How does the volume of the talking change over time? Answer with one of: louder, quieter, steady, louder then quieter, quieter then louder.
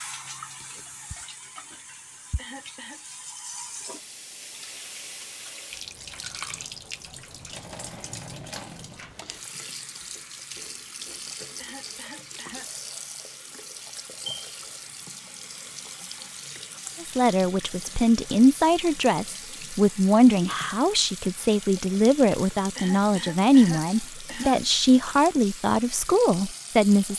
steady.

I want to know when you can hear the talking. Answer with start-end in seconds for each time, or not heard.
17.0-27.1.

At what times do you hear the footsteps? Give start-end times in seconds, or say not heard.
not heard.